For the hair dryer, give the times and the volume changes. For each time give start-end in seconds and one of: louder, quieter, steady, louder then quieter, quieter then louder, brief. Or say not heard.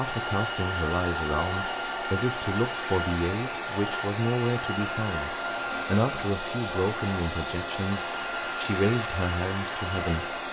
0.0-10.4 steady.